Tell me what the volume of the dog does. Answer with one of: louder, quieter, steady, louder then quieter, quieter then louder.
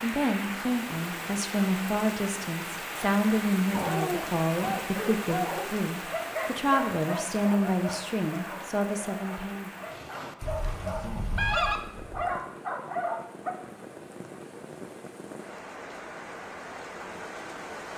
quieter then louder.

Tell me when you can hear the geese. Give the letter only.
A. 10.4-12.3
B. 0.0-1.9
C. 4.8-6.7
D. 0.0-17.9
A.